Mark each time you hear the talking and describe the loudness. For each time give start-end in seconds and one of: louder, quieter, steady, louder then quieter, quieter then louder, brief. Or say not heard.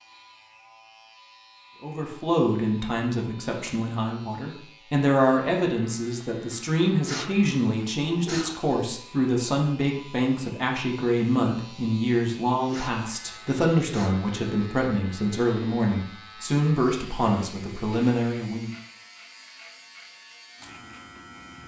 1.8-18.7 steady.